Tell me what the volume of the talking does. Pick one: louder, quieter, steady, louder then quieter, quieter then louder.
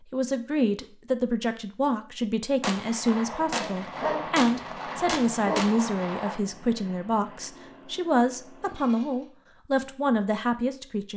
steady.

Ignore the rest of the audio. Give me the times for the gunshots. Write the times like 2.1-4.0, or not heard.
2.6-6.3.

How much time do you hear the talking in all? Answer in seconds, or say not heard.
11 s.